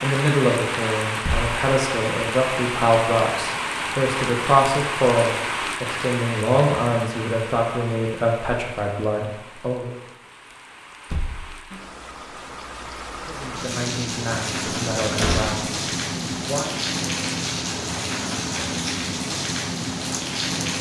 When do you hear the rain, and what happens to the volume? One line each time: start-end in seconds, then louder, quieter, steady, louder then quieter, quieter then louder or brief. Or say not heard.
0.0-20.7 quieter then louder.